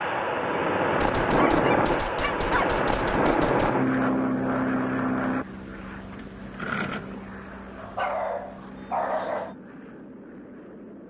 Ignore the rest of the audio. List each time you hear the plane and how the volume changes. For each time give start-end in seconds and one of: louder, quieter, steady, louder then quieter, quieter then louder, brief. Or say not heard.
0.0-11.0 quieter.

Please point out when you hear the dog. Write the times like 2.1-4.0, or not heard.
1.4-2.7, 7.8-9.6.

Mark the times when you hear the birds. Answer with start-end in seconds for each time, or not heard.
not heard.